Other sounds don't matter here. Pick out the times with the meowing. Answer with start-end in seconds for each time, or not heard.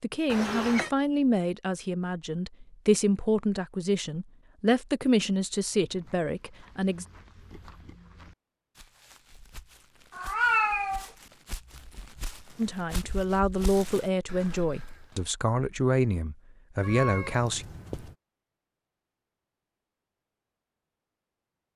0.2-0.9, 10.1-11.1, 16.8-18.1.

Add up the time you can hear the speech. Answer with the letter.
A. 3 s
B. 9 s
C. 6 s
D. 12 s
D.